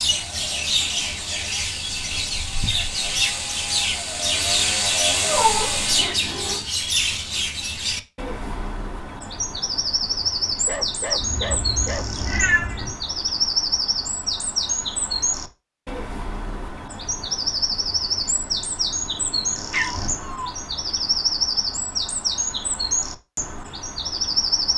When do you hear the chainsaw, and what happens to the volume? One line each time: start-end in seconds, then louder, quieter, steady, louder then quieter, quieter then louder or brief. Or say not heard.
0.0-6.1 louder.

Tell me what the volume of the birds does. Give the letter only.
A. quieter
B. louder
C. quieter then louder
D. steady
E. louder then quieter
D.